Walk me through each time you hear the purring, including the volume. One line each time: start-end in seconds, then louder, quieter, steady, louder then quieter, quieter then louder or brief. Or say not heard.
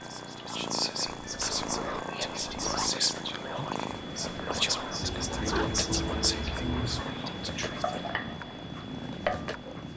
0.0-9.9 steady.